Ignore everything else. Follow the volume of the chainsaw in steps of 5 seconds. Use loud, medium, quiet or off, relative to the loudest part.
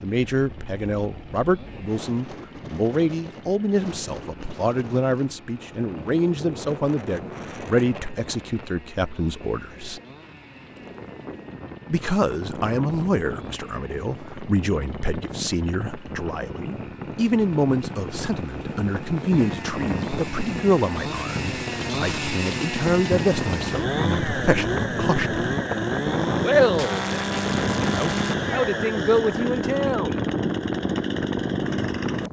quiet, quiet, quiet, quiet, loud, loud, loud.